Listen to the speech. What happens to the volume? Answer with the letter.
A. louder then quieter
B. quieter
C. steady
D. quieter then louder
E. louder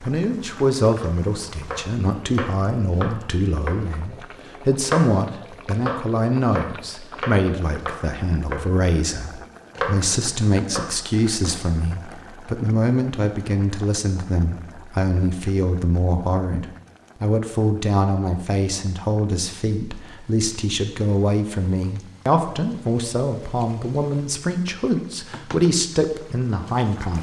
C.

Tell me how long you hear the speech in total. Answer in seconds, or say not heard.
27 s.